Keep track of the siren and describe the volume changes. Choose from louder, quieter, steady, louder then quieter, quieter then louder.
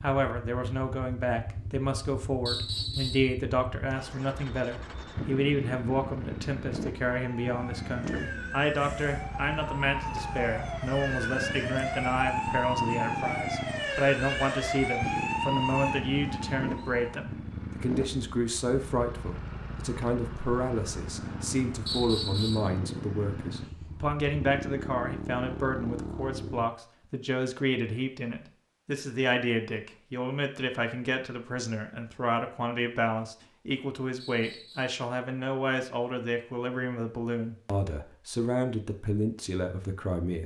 louder.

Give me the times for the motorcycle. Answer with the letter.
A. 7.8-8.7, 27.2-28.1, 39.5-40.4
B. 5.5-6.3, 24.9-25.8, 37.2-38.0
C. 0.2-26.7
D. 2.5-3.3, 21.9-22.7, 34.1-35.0
C.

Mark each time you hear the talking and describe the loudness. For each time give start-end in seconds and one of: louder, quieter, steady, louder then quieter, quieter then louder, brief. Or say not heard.
0.0-40.4 steady.